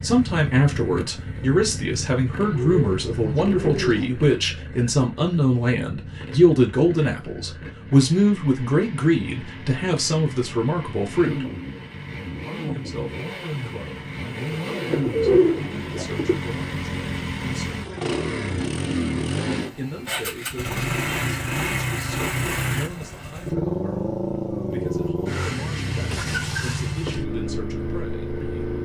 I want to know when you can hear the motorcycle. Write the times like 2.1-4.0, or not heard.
0.0-28.8.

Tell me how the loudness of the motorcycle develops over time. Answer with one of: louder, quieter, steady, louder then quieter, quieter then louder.
louder.